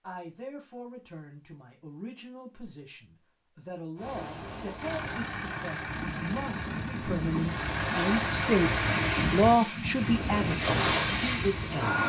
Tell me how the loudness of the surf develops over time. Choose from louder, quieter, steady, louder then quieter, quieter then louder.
louder.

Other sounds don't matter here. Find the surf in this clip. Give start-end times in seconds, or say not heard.
4.0-12.0.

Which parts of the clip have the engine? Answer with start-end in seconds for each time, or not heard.
4.8-9.6.